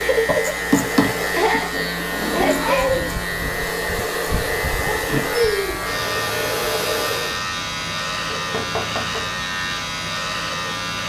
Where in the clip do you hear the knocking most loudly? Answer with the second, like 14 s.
1 s.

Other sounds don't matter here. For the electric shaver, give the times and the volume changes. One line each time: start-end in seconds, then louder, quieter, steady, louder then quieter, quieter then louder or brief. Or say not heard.
0.0-11.0 steady.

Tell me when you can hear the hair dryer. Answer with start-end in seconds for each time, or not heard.
0.0-7.4.